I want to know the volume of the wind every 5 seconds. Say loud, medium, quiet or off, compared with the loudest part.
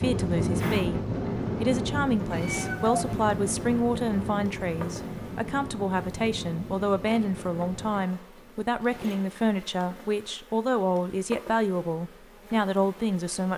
loud, medium, off.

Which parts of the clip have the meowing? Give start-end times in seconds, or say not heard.
2.3-3.0.